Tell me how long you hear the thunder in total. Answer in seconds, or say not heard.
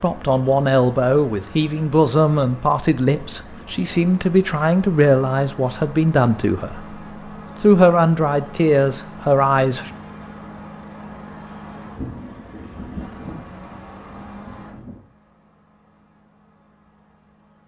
3 s.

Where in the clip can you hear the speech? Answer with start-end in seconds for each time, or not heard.
0.0-6.8, 7.6-9.9.